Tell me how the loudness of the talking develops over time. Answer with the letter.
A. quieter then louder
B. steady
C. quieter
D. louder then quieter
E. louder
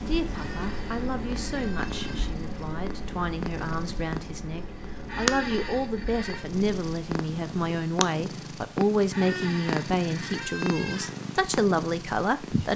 E.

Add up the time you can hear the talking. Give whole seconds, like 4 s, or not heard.
13 s.